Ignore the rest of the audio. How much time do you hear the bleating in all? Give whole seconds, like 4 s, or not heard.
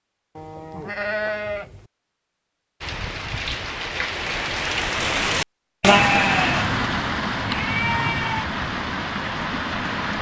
4 s.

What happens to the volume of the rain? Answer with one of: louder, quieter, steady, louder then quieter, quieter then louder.
louder then quieter.